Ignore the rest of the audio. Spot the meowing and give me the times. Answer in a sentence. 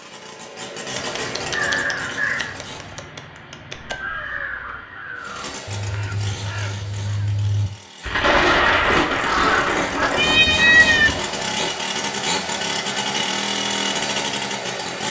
The meowing can be heard from 3.9 to 4.8 s and from 10.2 to 11.2 s.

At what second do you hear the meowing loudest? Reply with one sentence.
The loudest moment of the meowing is at 11 seconds.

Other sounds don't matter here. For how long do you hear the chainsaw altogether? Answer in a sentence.
You can hear the chainsaw for 13 seconds altogether.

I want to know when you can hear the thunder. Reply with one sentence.
The thunder can be heard from 8.0 to 11.7 s.